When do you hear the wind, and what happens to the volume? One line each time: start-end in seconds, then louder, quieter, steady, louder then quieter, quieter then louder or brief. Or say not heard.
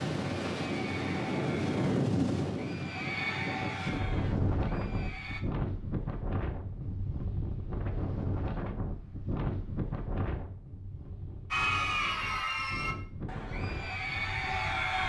0.0-15.0 quieter.